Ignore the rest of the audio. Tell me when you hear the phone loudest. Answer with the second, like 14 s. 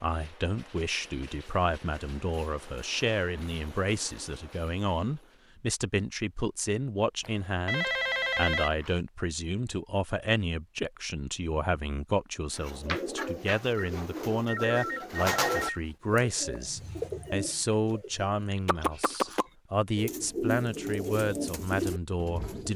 8 s.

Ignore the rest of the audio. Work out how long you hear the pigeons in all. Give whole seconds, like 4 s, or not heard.
10 s.